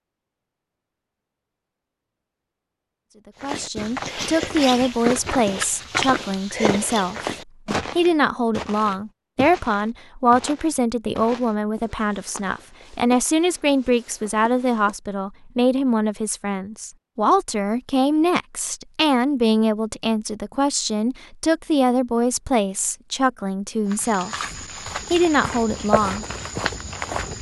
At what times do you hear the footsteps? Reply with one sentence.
You can hear the footsteps from 3.4 to 15.1 s and from 23.9 to 27.3 s.